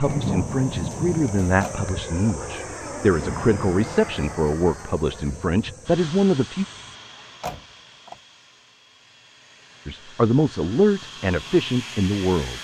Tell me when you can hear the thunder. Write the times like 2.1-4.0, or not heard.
0.1-1.9.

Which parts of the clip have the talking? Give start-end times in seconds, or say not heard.
0.0-6.7, 9.8-12.5.